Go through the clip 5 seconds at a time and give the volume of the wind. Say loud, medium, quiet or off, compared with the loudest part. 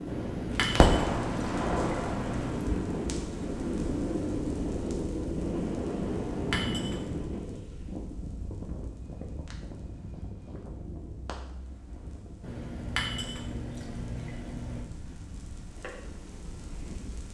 loud, loud, quiet, quiet.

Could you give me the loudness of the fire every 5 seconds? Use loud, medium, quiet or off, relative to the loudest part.
loud, quiet, quiet, quiet.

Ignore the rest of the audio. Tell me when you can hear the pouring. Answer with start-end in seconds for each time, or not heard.
0.1-2.8, 6.2-7.2, 12.4-14.8.